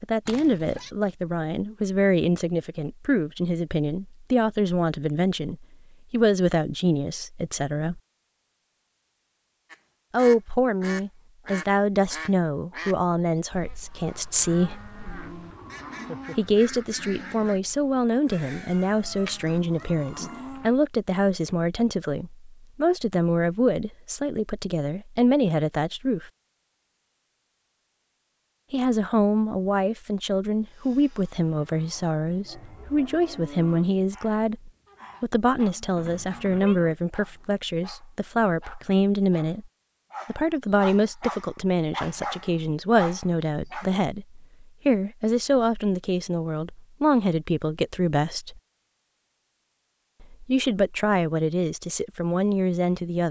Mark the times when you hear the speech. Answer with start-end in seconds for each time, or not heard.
0.0-8.0, 10.1-14.8, 16.4-26.3, 28.7-39.6, 40.2-48.6, 50.2-53.2.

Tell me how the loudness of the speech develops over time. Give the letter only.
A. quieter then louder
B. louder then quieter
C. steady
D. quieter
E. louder
C.